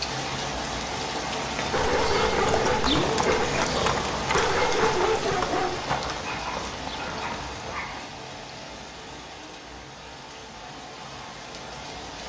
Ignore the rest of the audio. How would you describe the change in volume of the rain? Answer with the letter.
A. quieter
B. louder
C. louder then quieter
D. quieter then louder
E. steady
A.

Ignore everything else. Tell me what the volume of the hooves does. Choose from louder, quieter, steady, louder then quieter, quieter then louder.
quieter.